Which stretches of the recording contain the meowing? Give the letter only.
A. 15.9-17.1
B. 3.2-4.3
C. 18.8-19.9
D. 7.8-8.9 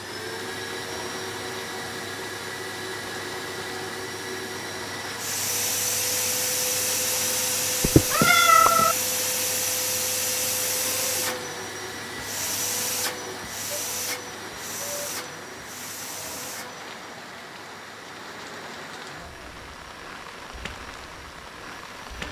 D.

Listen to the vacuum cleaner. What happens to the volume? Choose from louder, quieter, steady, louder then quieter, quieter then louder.
louder then quieter.